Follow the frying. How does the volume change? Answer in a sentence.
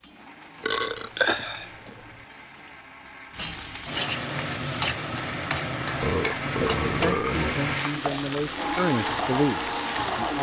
The loudness of the frying goes up.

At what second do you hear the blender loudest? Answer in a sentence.
The volume of the blender peaks at 9 seconds.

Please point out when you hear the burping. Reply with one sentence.
The burping can be heard from 0.6 to 2.2 s and from 6.0 to 7.5 s.